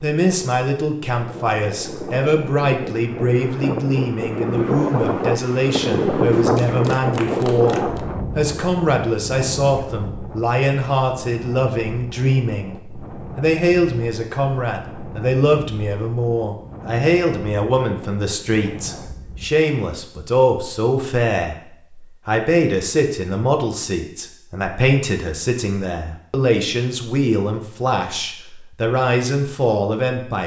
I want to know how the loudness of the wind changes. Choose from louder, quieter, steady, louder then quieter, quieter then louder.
louder then quieter.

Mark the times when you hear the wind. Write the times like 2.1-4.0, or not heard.
0.2-19.5.